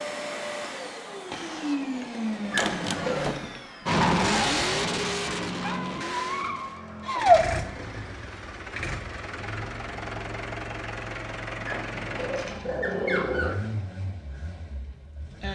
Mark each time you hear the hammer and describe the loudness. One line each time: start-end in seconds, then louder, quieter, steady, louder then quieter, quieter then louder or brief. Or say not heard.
not heard.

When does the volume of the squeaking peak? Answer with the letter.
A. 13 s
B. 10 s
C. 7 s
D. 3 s
C.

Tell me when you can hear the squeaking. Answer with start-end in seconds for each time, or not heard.
2.5-3.3, 5.6-7.4, 11.7-13.6.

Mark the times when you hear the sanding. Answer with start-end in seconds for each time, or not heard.
not heard.